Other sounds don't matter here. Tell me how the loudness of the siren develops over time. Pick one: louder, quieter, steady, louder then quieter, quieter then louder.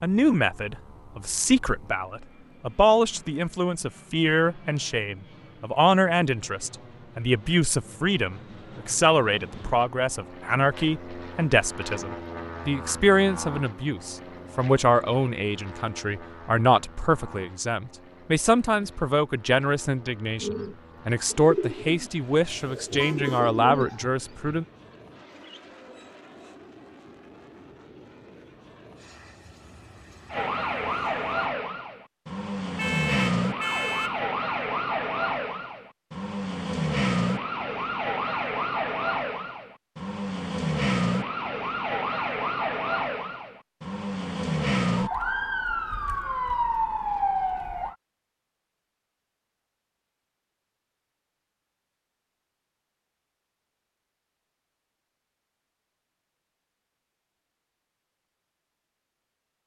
steady.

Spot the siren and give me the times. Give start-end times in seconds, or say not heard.
30.3-48.0.